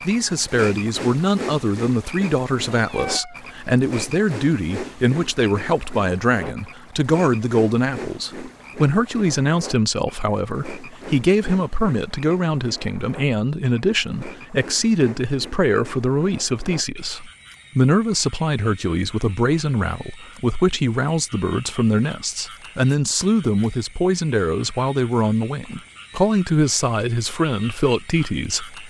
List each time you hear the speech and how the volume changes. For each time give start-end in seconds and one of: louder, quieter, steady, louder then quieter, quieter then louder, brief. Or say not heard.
0.1-28.8 steady.